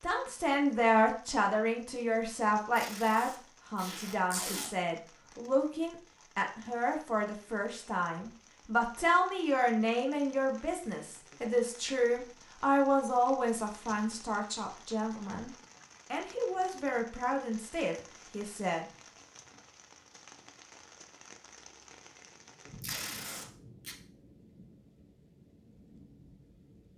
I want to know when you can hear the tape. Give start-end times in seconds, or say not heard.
2.8-4.7, 22.8-23.9.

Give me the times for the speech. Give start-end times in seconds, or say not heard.
0.0-15.5, 16.1-18.9.